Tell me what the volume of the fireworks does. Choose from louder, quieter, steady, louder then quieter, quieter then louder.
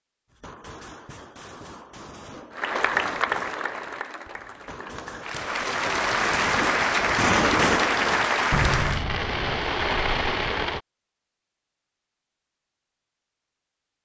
louder.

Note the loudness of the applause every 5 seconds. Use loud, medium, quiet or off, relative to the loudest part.
medium, loud, off.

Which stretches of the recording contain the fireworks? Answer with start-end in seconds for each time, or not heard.
0.3-10.8.